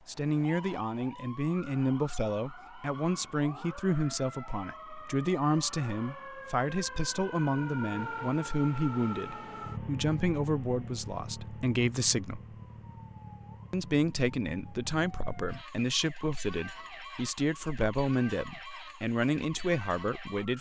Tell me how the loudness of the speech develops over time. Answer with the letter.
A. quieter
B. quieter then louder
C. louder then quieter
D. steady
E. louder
D.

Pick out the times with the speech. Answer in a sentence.
You can hear the speech from 0.1 to 12.4 s and from 13.7 to 20.5 s.